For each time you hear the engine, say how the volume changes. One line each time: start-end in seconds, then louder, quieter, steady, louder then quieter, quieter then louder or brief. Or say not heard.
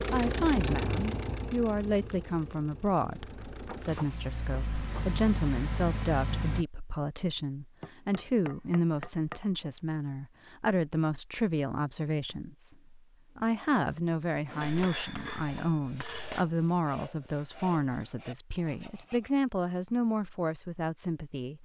0.0-6.7 quieter then louder.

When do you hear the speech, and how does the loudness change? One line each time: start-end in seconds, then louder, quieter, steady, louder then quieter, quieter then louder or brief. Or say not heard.
0.0-21.5 steady.